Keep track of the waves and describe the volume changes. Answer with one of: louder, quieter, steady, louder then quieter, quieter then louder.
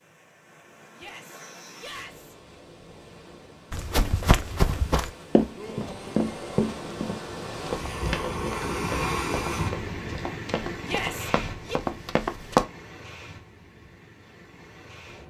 louder then quieter.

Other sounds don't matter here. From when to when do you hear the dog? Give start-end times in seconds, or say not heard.
not heard.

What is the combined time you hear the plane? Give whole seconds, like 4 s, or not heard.
not heard.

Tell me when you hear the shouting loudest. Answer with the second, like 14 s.
11 s.